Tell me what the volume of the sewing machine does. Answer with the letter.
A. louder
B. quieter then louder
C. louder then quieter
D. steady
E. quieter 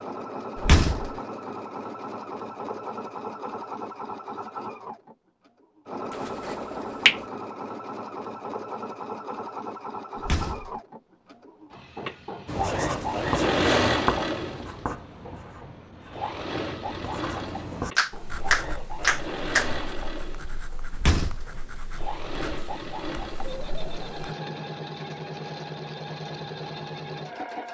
C.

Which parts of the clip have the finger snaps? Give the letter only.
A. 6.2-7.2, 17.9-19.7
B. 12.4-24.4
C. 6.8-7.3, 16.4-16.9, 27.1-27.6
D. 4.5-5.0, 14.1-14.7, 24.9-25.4
A.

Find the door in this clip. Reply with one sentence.
The door can be heard from 0.6 to 1.1 s, from 10.2 to 10.7 s and from 20.9 to 21.4 s.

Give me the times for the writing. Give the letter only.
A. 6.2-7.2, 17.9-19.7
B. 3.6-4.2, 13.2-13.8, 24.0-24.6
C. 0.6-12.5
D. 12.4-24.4
D.